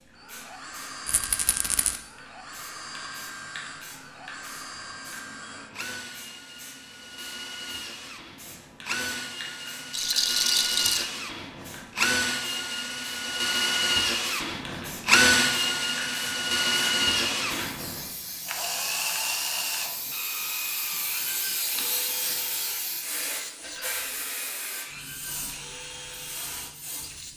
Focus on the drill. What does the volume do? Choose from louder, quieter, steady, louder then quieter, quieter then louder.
louder then quieter.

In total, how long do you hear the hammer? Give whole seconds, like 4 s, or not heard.
not heard.